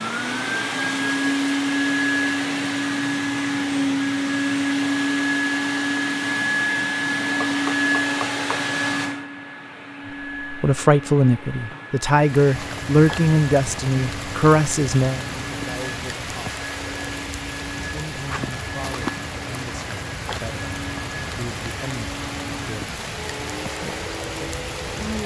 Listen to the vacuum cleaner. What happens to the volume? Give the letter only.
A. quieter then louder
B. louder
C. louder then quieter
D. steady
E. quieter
E.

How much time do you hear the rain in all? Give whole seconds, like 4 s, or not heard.
13 s.